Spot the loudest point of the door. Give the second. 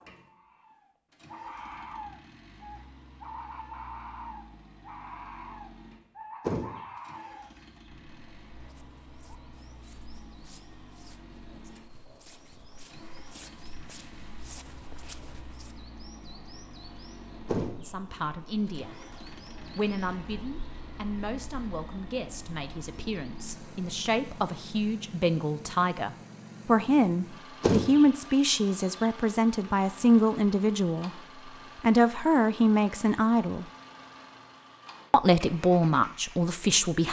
28 s.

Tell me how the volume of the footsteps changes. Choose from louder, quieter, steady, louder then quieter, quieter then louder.
louder.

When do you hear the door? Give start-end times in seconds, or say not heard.
6.4-7.2, 17.4-18.3, 27.6-28.4.